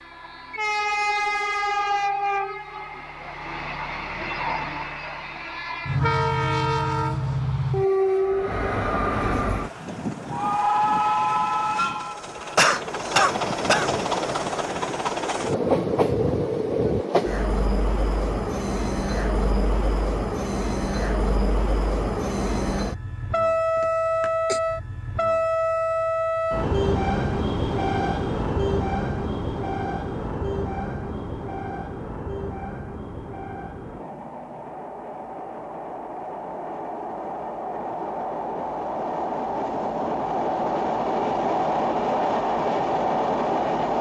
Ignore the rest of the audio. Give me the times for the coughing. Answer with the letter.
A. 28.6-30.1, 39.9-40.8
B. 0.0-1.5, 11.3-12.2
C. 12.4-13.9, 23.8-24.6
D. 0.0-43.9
C.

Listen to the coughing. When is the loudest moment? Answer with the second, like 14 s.
13 s.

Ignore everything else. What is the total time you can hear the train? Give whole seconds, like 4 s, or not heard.
44 s.